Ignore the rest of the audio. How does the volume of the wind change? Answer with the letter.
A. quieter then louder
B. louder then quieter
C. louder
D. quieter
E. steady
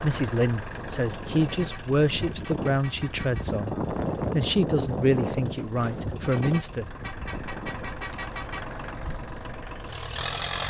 B.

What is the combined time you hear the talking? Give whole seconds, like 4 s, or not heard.
7 s.